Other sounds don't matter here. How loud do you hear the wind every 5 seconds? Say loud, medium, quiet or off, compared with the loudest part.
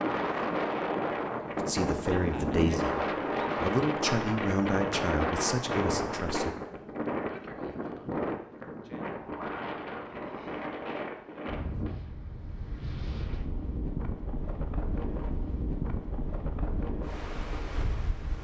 loud, loud, medium, medium.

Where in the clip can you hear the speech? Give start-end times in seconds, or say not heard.
1.6-6.5.